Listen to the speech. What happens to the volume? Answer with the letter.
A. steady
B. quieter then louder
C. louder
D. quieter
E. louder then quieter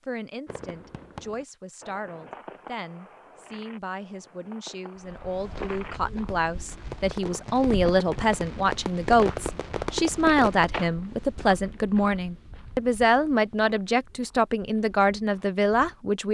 C.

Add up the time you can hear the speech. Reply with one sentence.
You can hear the speech for 16 seconds altogether.